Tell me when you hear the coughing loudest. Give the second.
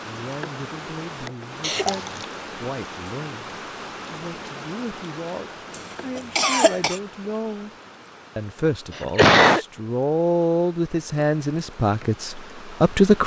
9 s.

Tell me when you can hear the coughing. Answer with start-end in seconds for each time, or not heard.
1.6-2.2, 6.2-7.0, 8.9-9.7.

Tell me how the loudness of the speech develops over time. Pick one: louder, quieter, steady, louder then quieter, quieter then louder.
louder.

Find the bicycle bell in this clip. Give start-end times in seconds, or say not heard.
not heard.